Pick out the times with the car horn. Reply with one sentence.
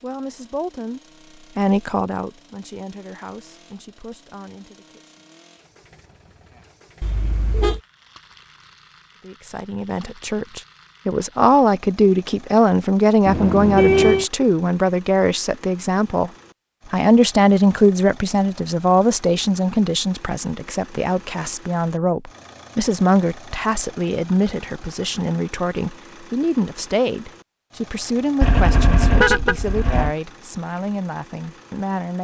The car horn can be heard from 7.0 to 7.8 s, from 13.2 to 14.2 s and from 28.4 to 30.1 s.